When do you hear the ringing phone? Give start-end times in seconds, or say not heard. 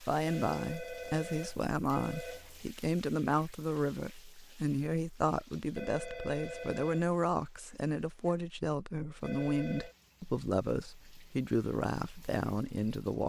0.2-2.6, 5.8-7.1, 9.2-9.9.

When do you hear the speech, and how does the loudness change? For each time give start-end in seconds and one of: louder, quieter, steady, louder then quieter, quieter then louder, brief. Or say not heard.
0.0-13.2 steady.